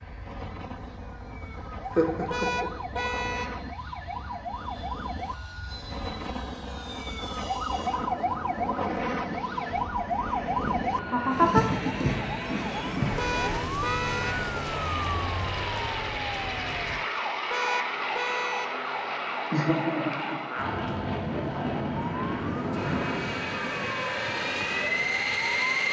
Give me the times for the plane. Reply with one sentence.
The plane can be heard from 0.0 to 25.8 s.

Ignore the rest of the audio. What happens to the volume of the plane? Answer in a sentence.
The loudness of the plane goes up.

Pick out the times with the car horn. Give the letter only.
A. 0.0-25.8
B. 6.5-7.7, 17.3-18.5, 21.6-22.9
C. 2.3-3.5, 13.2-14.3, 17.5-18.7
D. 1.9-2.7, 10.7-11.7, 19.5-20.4
C.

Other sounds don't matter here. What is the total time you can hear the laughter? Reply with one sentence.
You can hear the laughter for 3 seconds altogether.